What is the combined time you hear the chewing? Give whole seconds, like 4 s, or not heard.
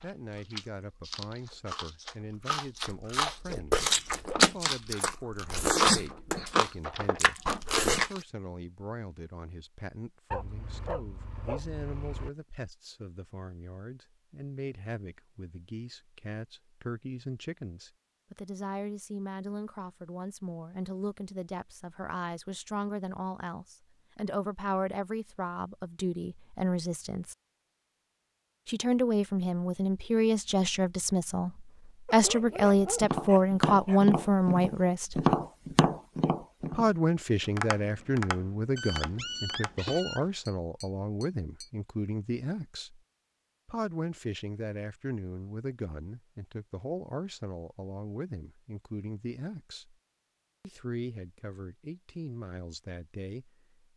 8 s.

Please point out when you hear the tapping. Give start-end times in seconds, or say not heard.
33.0-41.7.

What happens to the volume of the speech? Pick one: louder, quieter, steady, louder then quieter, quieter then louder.
louder then quieter.